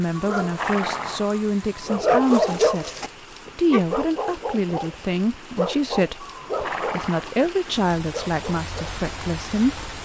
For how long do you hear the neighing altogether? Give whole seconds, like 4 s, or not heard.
2 s.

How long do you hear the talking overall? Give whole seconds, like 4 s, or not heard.
9 s.